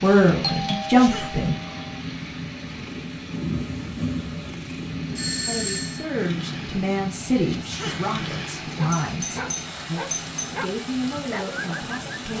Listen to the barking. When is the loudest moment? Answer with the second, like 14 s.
11 s.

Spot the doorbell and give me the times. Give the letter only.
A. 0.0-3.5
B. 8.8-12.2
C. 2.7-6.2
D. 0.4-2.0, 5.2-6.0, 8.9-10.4
D.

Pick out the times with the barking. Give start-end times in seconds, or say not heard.
8.8-12.2.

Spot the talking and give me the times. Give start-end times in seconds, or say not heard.
0.0-1.6, 5.5-12.3.